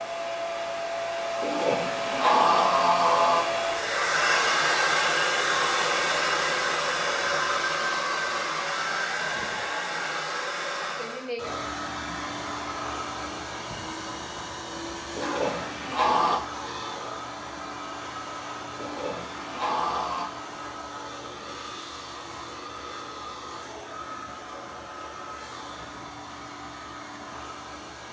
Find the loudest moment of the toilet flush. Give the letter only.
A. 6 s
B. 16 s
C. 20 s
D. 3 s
D.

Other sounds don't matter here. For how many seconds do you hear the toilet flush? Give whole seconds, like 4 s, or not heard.
5 s.